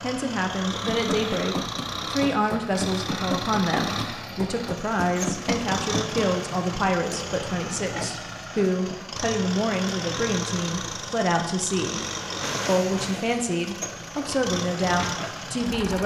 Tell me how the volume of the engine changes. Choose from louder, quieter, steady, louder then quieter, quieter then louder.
steady.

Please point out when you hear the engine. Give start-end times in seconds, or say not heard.
0.0-16.0.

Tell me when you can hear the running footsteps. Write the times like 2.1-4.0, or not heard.
0.8-6.3.